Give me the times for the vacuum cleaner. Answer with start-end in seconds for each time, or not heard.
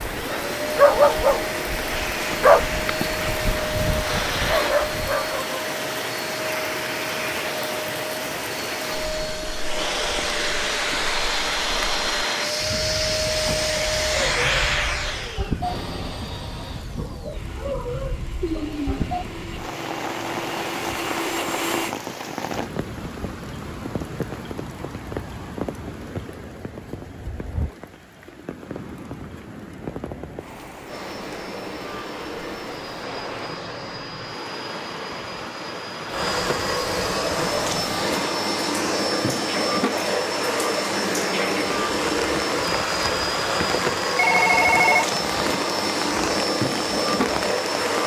0.0-21.9, 30.9-48.0.